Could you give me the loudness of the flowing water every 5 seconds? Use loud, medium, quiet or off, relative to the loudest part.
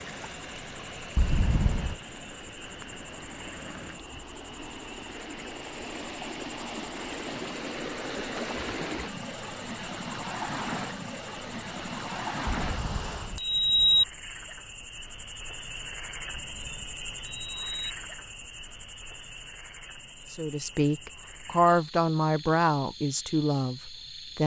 medium, loud, loud, off, off.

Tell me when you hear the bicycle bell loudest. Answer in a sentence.
The volume of the bicycle bell peaks at 14 seconds.